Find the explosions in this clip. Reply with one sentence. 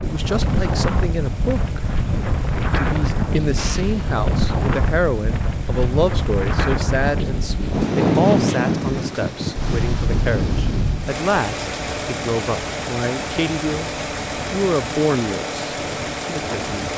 You can hear the explosions from 3.5 to 4.2 s.